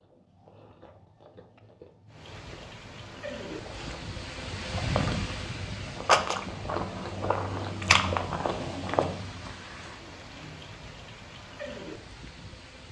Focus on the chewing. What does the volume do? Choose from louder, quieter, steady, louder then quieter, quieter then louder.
louder.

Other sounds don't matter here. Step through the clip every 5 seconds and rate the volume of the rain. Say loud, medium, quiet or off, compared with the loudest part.
loud, loud, medium.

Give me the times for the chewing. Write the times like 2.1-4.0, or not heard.
0.0-9.5.